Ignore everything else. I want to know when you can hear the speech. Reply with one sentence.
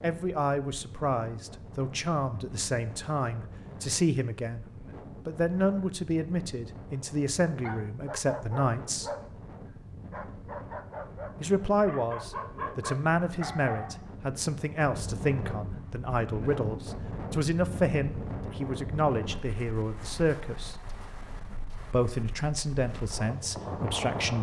You can hear the speech from 0.0 to 4.7 s, from 5.2 to 9.1 s, from 11.4 to 20.8 s and from 21.9 to 24.3 s.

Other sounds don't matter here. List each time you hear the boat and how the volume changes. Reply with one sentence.
You can't hear the boat here.